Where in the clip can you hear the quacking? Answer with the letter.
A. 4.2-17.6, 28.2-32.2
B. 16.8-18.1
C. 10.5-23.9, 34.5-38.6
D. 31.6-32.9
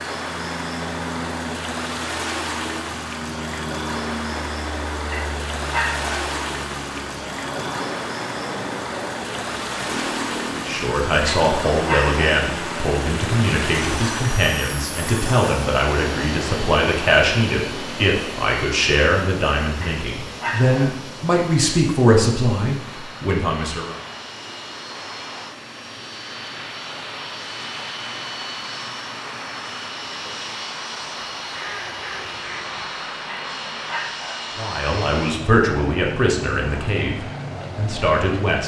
D.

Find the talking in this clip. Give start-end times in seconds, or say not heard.
10.5-23.9, 34.5-38.6.